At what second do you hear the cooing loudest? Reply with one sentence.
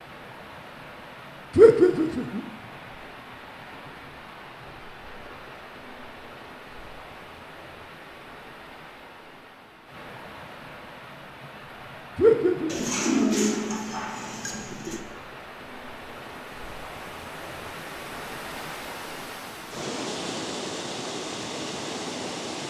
The volume of the cooing peaks at 13 seconds.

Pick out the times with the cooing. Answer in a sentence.
You can hear the cooing from 12.7 to 15.1 s.